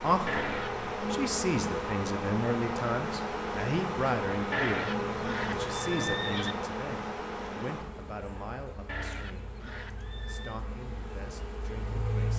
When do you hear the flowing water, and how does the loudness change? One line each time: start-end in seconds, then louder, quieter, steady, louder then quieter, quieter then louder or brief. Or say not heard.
not heard.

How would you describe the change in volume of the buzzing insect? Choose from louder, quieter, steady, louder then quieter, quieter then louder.
quieter.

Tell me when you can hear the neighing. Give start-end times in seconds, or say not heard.
0.2-0.9, 4.5-6.5, 8.8-10.6.